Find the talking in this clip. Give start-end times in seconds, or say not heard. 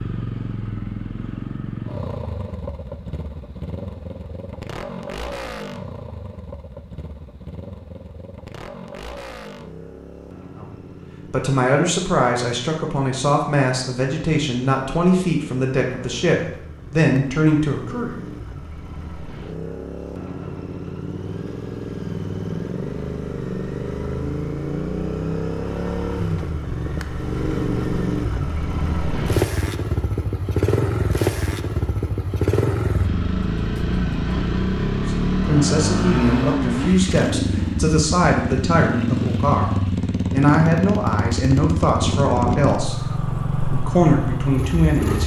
10.6-18.2, 35.0-43.0, 43.7-45.2.